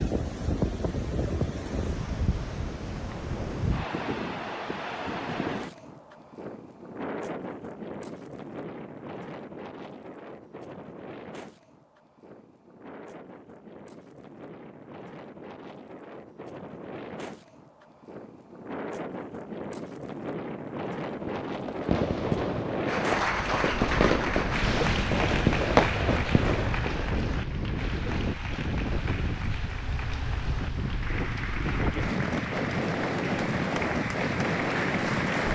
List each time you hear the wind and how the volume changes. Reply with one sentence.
The wind can be heard from 0.0 to 35.4 s, getting quieter then louder.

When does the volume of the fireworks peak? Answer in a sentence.
The volume of the fireworks peaks at 26 seconds.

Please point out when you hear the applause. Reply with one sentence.
You can hear the applause from 22.9 to 35.4 s.